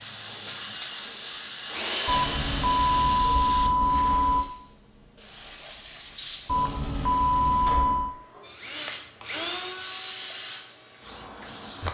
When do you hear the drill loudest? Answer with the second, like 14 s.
2 s.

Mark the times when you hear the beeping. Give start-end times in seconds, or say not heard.
2.0-4.5, 6.5-8.2.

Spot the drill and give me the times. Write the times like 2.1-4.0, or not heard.
0.0-3.2, 8.4-11.6.